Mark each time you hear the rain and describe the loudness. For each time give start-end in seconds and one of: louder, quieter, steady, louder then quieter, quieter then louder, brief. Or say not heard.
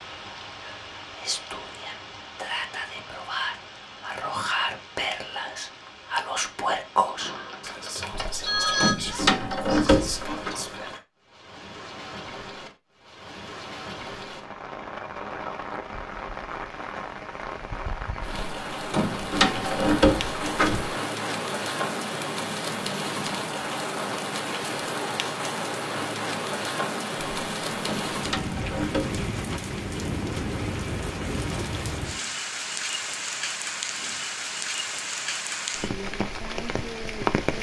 0.0-37.5 louder.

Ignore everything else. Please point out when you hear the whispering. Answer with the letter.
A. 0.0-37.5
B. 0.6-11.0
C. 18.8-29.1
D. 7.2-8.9
B.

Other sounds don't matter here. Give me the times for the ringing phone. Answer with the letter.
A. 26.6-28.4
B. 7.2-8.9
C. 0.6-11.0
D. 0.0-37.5
B.